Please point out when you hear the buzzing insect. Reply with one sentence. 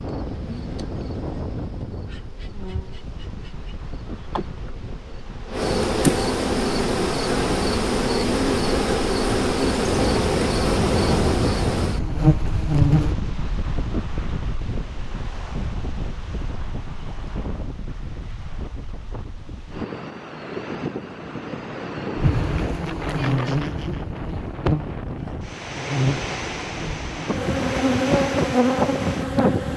The buzzing insect can be heard from 0.0 to 13.2 s and from 22.1 to 29.7 s.